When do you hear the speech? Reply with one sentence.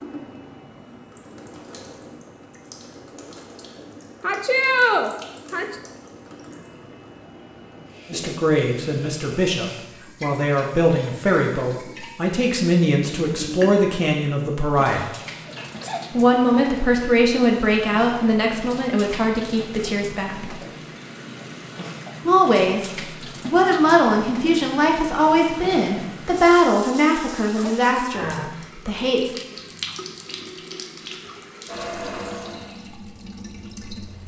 The speech can be heard from 8.1 to 15.1 s, from 16.1 to 20.6 s and from 22.2 to 29.4 s.